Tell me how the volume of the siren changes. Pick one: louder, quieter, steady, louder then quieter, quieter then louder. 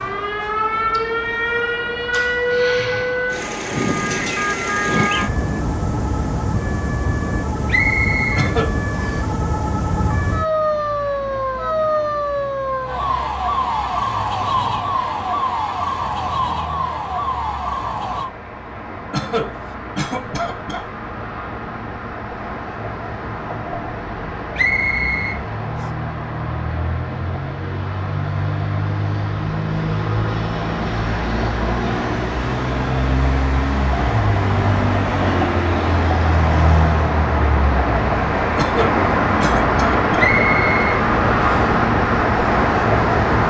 steady.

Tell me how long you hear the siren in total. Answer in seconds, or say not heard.
18 s.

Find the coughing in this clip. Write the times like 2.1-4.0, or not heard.
8.3-8.8, 19.1-20.9, 38.5-40.0.